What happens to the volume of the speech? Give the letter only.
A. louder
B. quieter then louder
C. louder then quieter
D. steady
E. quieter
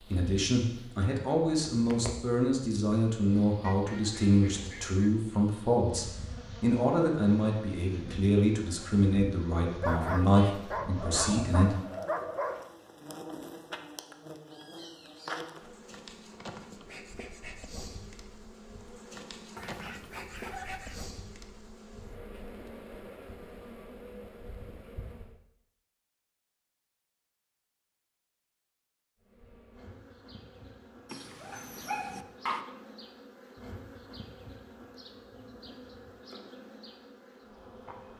D.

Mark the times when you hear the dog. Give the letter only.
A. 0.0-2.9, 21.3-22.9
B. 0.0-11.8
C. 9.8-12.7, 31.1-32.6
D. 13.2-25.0
C.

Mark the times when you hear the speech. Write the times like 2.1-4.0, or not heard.
0.0-11.8.